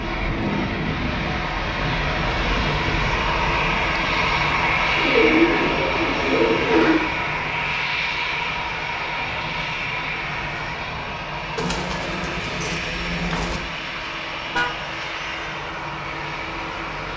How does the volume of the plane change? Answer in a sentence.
The loudness of the plane goes down.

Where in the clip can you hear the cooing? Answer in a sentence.
The cooing can be heard from 5.0 to 7.0 s and from 11.6 to 13.6 s.